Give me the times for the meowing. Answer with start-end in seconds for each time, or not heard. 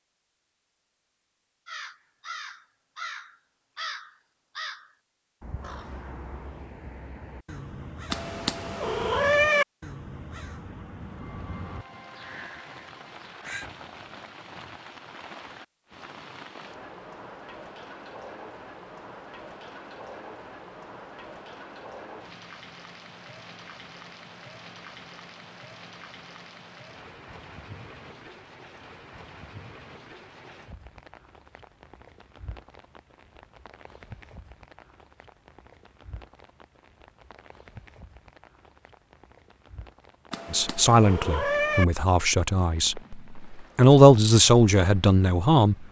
8.1-9.7, 40.3-41.9.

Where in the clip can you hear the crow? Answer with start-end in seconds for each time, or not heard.
1.6-13.7.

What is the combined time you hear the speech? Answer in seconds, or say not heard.
5 s.